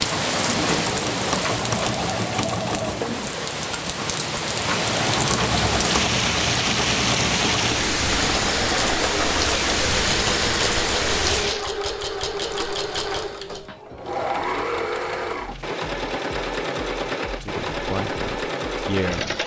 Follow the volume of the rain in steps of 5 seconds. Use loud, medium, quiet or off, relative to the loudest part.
loud, loud, loud, off.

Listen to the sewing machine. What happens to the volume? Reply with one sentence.
The loudness of the sewing machine stays about the same.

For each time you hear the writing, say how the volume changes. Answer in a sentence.
The writing can't be heard in this clip.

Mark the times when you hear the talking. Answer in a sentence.
The talking can be heard from 17.4 to 19.3 s.